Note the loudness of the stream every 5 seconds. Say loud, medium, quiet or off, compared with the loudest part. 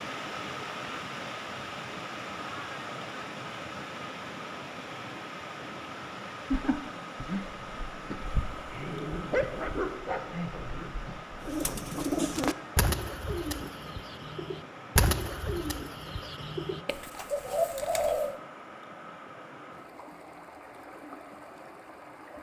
loud, loud, medium, medium, medium.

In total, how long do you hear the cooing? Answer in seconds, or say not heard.
7 s.